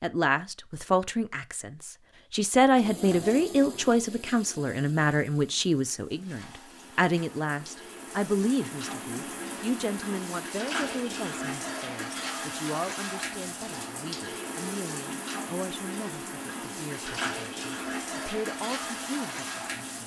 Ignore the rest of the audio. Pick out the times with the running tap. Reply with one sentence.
The running tap can be heard from 2.8 to 20.0 s.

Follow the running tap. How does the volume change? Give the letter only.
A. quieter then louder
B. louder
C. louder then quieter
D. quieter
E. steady
B.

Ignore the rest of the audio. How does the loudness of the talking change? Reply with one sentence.
The loudness of the talking goes down.